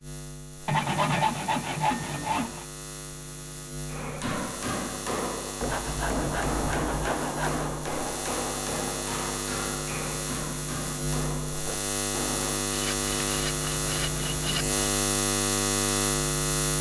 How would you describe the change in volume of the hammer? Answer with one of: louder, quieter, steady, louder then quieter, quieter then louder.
quieter.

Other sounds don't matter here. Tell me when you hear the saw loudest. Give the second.
1 s.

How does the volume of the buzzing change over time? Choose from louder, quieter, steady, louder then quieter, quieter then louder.
louder.